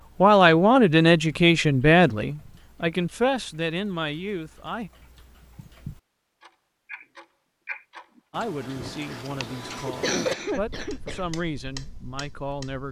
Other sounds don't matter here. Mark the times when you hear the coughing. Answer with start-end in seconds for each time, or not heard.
8.7-11.2.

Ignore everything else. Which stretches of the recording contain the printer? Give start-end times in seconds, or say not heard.
not heard.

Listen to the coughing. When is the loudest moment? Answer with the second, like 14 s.
10 s.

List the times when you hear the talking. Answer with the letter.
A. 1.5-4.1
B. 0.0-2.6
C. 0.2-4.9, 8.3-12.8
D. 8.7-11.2
C.